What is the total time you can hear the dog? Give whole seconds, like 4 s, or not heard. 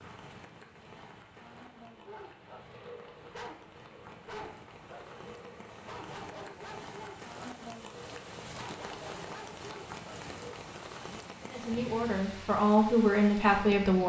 9 s.